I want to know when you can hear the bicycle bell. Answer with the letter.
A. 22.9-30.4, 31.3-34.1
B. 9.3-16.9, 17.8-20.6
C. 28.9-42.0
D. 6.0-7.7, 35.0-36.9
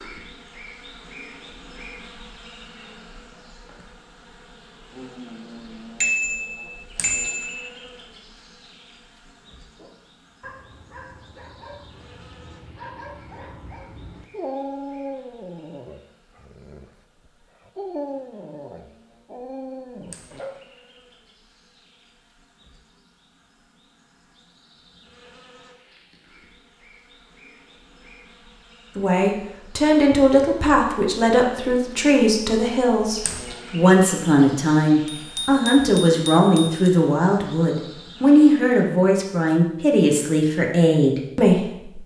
D.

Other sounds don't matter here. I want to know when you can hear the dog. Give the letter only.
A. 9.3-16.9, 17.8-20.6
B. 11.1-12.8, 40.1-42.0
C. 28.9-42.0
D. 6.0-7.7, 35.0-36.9
A.